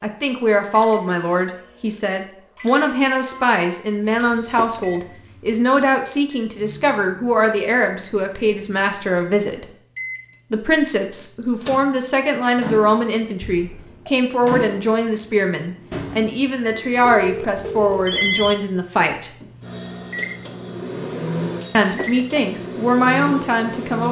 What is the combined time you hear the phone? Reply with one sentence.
You can hear the phone for 3 seconds altogether.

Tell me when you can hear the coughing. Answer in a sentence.
You can't hear the coughing here.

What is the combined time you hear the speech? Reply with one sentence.
The speech can be heard for 21 seconds in total.